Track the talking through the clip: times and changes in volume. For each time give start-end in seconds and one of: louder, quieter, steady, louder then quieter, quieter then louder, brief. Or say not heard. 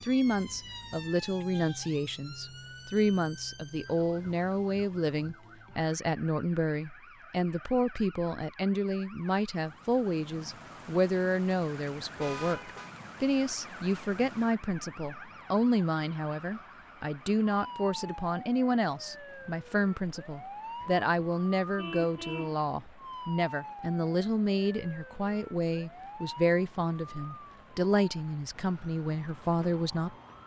0.0-30.4 steady.